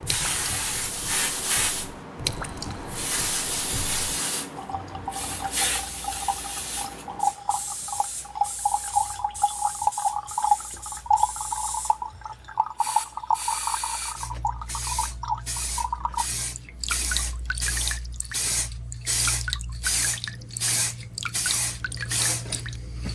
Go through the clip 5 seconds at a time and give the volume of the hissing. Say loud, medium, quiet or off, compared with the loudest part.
loud, medium, medium, loud, loud.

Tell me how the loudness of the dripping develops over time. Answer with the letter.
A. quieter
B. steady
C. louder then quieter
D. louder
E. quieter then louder
C.